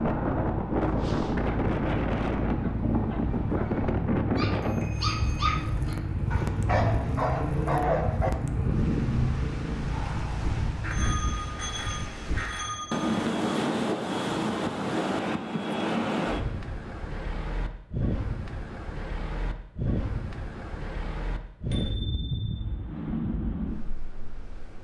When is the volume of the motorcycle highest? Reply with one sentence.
The loudest moment of the motorcycle is at 7 seconds.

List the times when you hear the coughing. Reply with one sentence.
You can't hear the coughing here.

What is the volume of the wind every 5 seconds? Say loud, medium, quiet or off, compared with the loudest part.
loud, medium, loud, loud, medium.